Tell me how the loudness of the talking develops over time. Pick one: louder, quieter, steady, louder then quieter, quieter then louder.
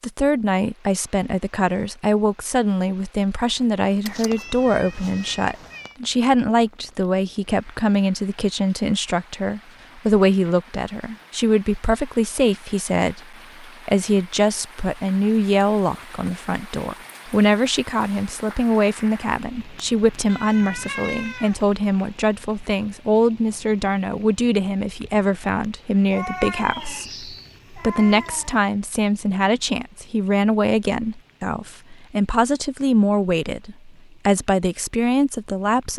steady.